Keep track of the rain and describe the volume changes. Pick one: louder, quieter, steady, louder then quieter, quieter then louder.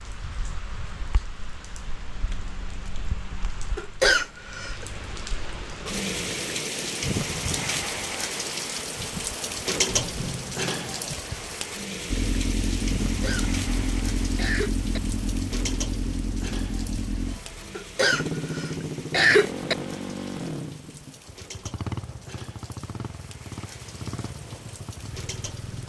louder then quieter.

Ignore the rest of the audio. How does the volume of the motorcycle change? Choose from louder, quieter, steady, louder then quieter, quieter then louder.
quieter.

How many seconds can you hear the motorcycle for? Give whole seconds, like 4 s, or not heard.
14 s.